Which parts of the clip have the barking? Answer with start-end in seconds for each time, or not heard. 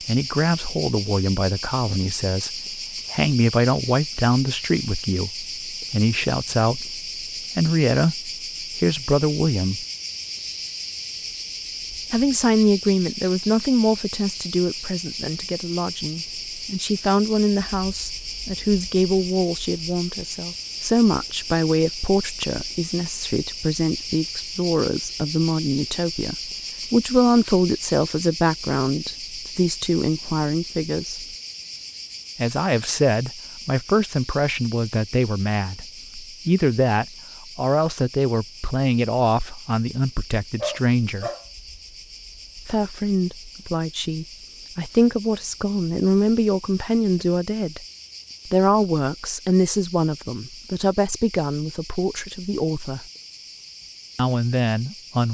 40.6-41.5.